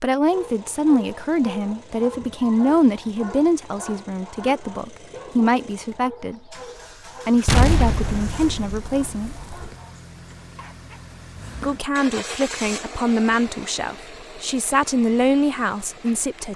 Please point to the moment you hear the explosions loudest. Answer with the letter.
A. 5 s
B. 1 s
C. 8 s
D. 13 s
C.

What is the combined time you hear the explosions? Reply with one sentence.
The explosions can be heard for 2 seconds in total.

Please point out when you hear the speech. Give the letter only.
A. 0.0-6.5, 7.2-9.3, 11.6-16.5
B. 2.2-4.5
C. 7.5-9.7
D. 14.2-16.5
A.